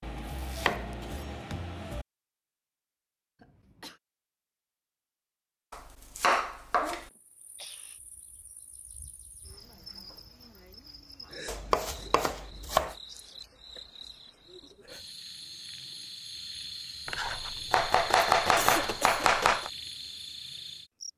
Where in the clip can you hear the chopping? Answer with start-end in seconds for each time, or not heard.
0.0-2.0, 5.7-7.0, 11.4-12.9, 17.1-19.7.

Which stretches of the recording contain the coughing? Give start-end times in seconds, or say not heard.
3.4-4.0, 7.1-8.0, 18.6-19.2.